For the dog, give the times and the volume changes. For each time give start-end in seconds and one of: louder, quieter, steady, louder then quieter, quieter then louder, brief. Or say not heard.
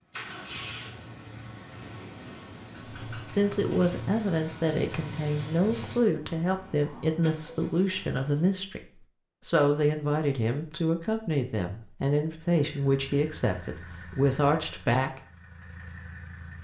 not heard.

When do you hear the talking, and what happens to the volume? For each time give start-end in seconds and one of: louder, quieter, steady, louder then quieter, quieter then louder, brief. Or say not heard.
3.1-15.2 steady.